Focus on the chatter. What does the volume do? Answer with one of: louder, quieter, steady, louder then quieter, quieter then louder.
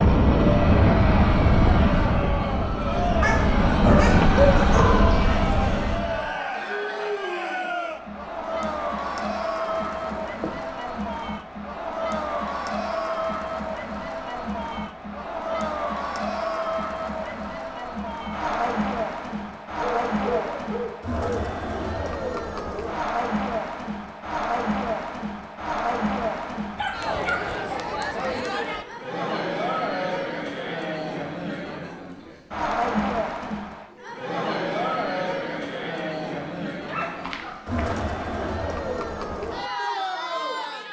steady.